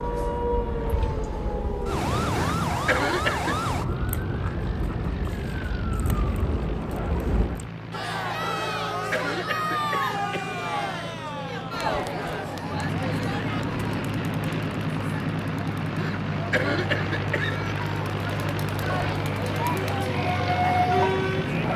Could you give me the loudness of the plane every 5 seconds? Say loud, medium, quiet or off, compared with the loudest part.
medium, medium, loud, loud, loud.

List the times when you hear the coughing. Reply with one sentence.
You can hear the coughing from 2.3 to 3.6 s, from 8.6 to 10.6 s and from 15.9 to 17.6 s.